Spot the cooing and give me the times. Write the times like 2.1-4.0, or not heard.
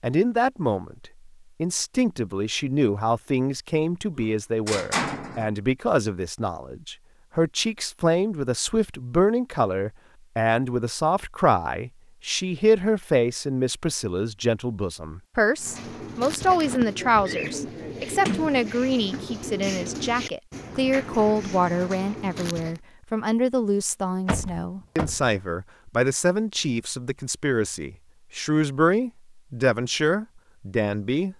15.6-22.8.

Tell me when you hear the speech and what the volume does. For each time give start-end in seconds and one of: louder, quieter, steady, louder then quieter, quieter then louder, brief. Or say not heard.
0.0-31.3 steady.